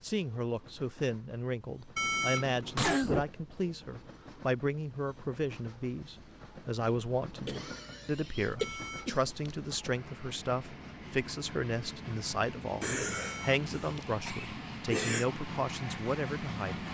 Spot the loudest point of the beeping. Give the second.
2 s.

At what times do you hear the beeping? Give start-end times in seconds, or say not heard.
1.9-3.0, 8.6-9.6, 13.1-14.2.